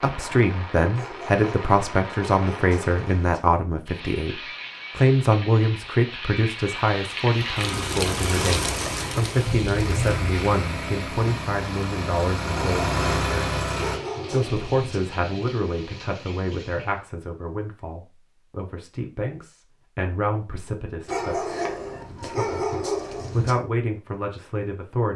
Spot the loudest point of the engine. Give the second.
13 s.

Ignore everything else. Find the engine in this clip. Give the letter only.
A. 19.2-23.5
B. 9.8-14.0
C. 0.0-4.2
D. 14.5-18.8
B.